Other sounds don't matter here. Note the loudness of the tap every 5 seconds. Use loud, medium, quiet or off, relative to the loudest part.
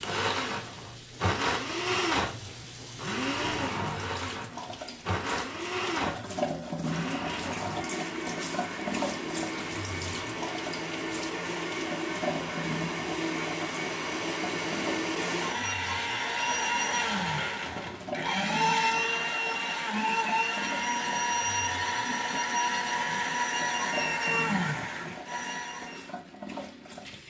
medium, loud, loud, medium, medium, medium.